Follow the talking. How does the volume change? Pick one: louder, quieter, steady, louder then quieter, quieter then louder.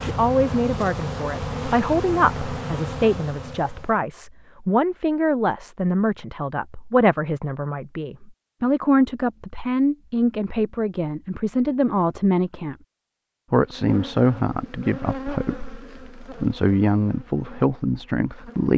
steady.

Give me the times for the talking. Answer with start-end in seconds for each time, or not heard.
0.0-12.8, 13.5-18.7.